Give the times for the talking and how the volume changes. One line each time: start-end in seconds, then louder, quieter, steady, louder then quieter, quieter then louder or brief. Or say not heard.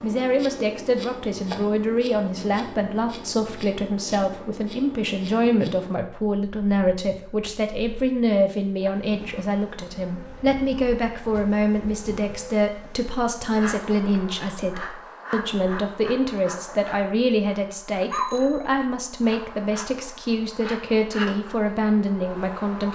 0.0-22.8 steady.